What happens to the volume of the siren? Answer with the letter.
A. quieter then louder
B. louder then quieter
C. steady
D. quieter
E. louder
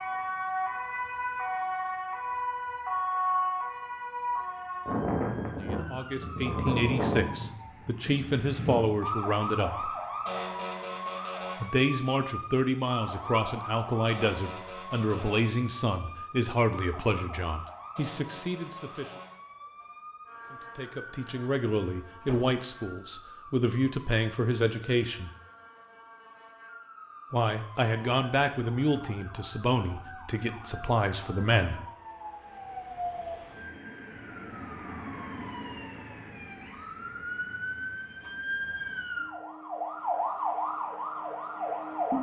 A.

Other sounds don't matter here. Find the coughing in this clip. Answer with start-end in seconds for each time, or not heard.
not heard.